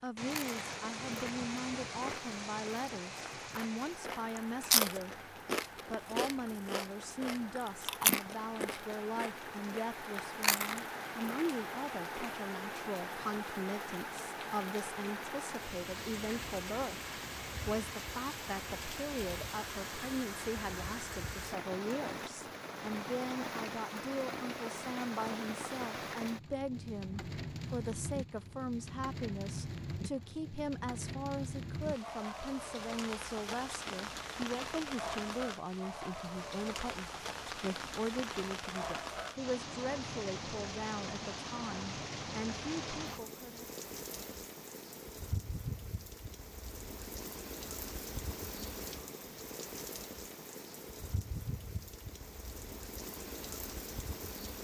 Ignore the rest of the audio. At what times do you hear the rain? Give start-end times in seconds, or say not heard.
0.1-54.5.